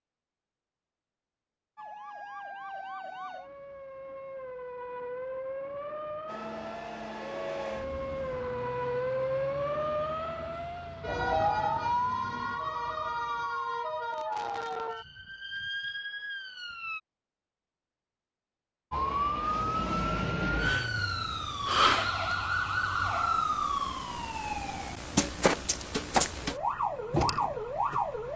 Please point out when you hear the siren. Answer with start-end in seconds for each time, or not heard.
1.8-17.0, 18.9-28.3.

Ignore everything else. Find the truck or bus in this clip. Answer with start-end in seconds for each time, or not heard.
6.2-12.6.